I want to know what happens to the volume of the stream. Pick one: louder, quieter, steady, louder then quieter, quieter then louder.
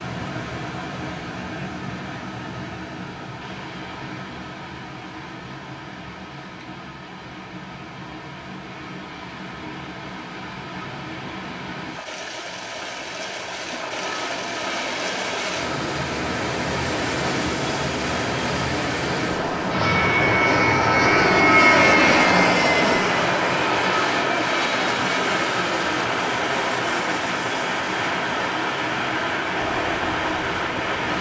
louder.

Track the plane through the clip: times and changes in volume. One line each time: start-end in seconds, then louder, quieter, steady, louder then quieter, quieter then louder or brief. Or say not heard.
13.6-31.1 louder then quieter.